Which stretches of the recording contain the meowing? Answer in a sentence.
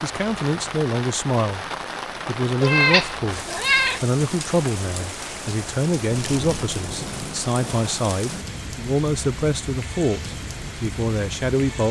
You can hear the meowing from 2.6 to 4.0 s and from 6.2 to 6.8 s.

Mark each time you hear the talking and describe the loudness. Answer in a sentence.
The talking can be heard briefly from 0.0 to 1.6 s; and from 2.2 to 11.8 s, at a steady volume.